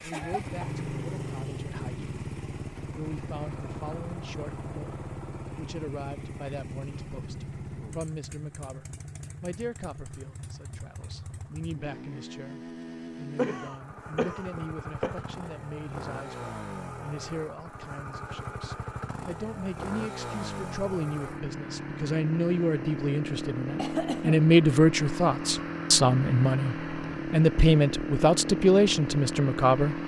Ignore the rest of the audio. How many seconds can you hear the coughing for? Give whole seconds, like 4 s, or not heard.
3 s.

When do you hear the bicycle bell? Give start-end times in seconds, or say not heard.
not heard.